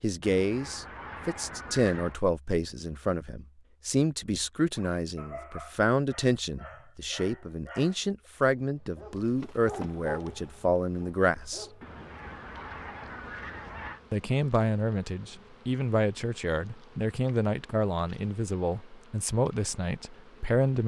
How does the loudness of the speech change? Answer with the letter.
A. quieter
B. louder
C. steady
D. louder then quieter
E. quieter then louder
C.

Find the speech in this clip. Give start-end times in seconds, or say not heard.
0.0-11.7, 14.1-20.8.